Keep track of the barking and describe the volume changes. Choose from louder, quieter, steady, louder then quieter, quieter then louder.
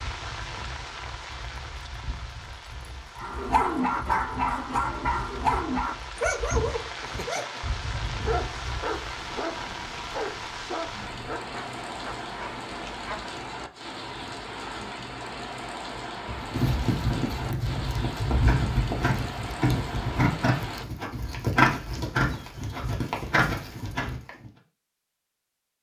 quieter.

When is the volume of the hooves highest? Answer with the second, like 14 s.
22 s.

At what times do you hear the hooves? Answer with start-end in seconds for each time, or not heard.
0.0-9.2, 16.2-24.5.